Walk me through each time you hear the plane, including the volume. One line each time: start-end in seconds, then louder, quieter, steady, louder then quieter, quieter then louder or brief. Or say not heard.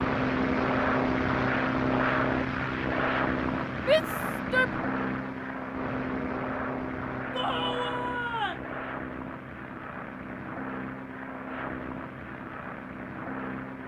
0.0-13.8 quieter.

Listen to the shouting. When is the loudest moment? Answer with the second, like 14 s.
4 s.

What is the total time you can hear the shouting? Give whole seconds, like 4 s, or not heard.
2 s.